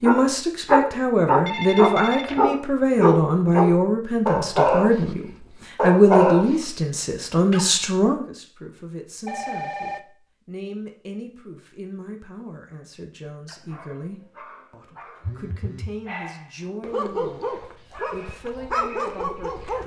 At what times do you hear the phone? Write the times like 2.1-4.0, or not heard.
1.4-2.5, 9.2-10.1, 15.2-15.9.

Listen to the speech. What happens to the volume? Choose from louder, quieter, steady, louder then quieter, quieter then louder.
quieter.